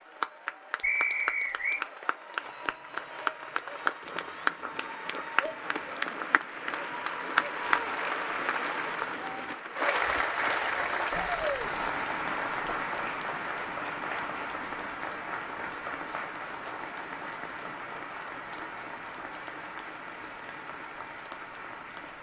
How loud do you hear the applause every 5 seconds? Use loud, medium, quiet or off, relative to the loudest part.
loud, loud, loud, medium, medium.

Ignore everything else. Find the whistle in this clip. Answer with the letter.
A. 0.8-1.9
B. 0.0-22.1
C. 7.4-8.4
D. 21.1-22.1
A.